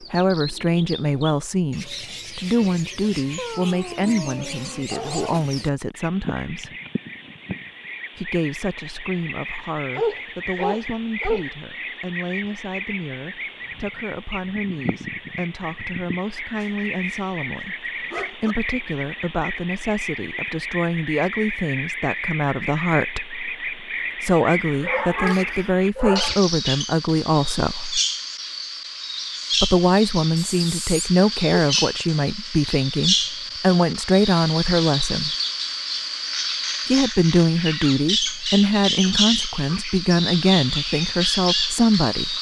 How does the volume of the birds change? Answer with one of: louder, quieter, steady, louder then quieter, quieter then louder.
louder.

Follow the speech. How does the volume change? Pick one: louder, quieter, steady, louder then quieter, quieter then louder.
quieter then louder.